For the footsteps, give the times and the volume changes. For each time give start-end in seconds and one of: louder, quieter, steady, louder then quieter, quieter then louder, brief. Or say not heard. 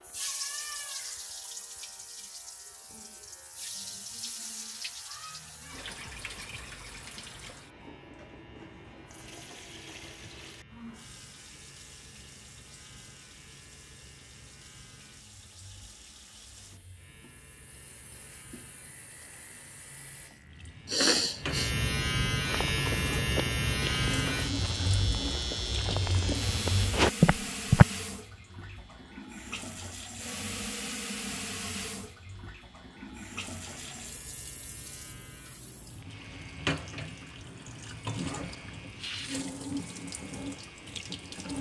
22.4-27.9 louder.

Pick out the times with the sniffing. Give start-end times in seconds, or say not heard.
20.9-21.8.